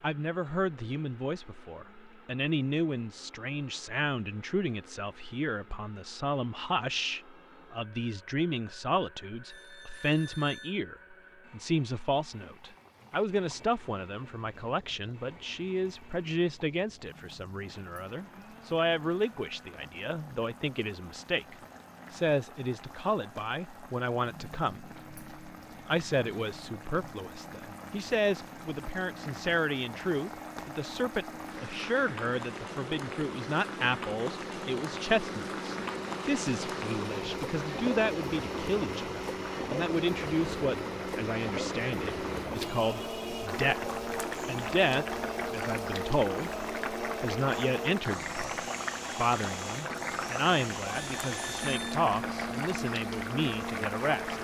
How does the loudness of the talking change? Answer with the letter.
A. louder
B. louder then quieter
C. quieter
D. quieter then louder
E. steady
E.